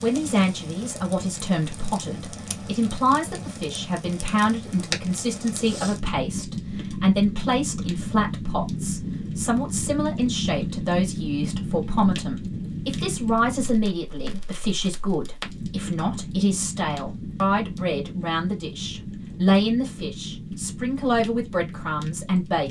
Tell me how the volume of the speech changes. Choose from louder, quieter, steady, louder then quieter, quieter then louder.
steady.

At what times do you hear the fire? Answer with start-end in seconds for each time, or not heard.
0.0-22.6.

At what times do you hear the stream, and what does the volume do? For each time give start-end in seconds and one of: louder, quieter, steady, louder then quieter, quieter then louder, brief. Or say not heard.
not heard.